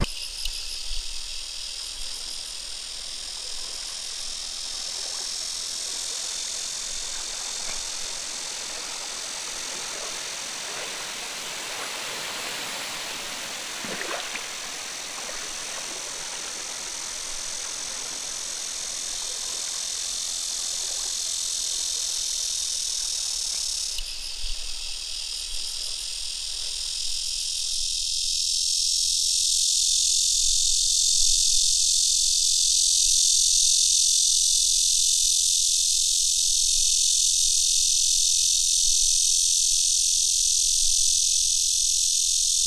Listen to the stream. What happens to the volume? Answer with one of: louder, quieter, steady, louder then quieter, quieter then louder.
louder then quieter.